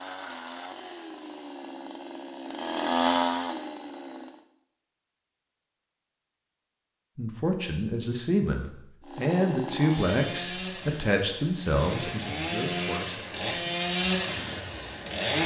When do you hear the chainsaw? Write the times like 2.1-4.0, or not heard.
0.0-4.5, 9.0-15.4.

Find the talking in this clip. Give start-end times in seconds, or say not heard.
7.2-13.7.